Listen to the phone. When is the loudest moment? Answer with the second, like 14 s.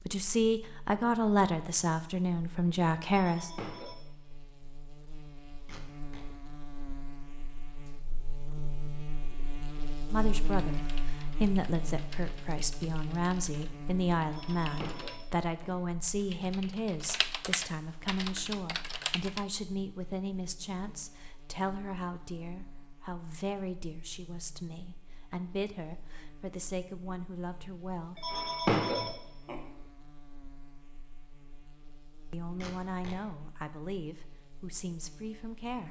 29 s.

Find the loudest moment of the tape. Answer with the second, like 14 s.
33 s.